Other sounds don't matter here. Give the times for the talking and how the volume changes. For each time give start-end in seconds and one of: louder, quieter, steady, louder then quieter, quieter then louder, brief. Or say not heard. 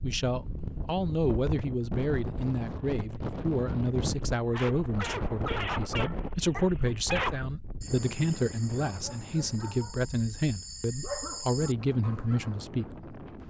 0.0-13.2 steady.